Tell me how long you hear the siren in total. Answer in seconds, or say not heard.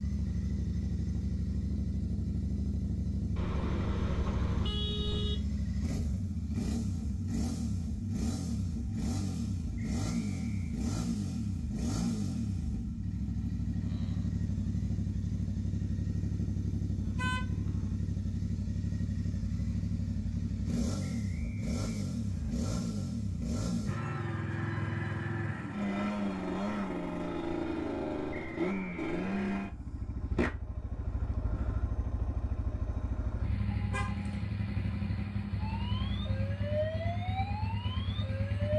3 s.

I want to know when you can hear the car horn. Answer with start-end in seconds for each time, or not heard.
3.4-5.3, 17.0-17.9, 33.7-34.5.